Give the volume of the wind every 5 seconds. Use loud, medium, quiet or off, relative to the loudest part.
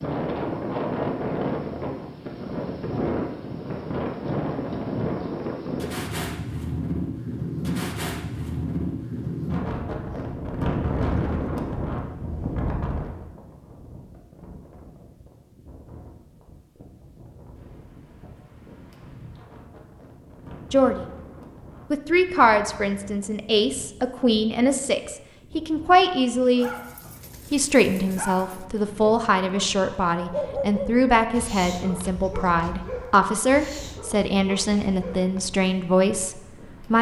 loud, loud, loud, quiet, quiet, quiet, quiet, quiet.